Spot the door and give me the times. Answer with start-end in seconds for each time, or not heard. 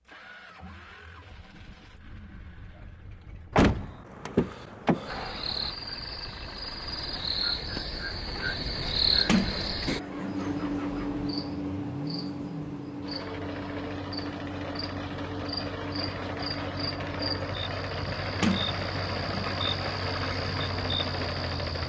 3.5-5.7, 9.2-10.4, 18.4-19.6.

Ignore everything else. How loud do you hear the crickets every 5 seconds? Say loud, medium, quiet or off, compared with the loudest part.
off, loud, loud, medium, medium.